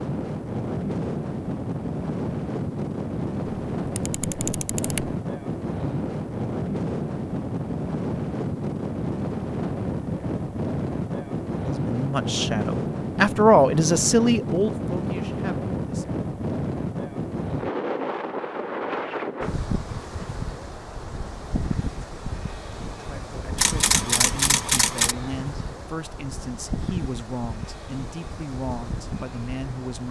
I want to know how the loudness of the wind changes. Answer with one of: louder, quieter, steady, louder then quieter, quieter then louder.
quieter.